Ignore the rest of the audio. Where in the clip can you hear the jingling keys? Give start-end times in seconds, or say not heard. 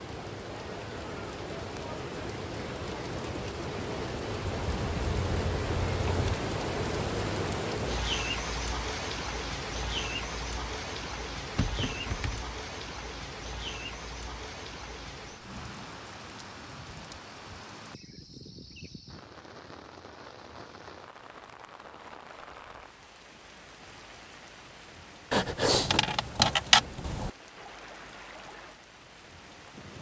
4.5-6.2, 11.6-12.5, 25.3-27.3.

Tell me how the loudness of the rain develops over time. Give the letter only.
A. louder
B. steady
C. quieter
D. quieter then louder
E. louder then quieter
C.